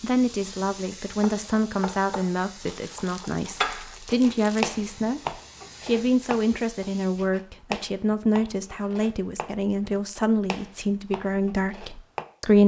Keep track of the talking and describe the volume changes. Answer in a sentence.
The volume of the talking stays about the same.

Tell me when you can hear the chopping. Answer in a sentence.
You can hear the chopping from 1.2 to 12.2 s.